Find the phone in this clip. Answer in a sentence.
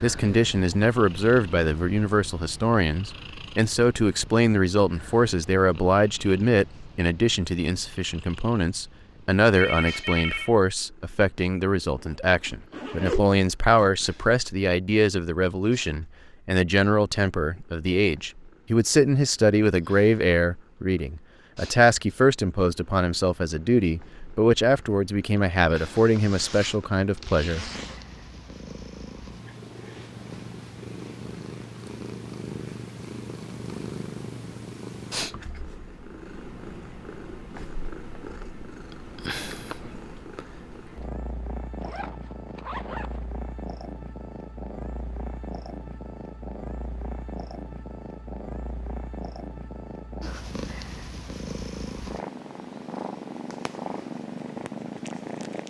You can hear the phone from 9.6 to 10.6 s.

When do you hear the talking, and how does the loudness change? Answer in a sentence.
You can hear the talking from 0.0 to 27.6 s, at a steady volume.